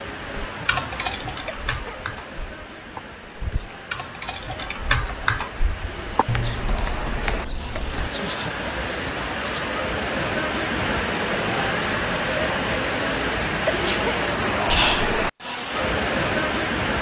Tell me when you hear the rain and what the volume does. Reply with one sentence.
The rain can be heard from 0.0 to 16.9 s, getting louder.